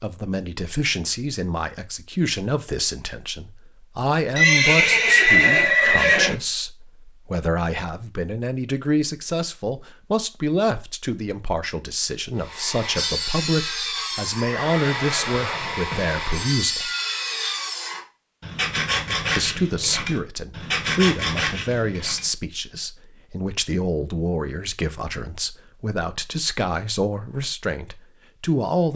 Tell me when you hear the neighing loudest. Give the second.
5 s.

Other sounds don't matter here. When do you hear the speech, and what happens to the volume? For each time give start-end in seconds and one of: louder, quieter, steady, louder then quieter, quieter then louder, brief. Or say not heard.
0.0-16.9 steady
19.4-28.9 steady.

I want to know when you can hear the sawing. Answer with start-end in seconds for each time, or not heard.
12.3-22.3.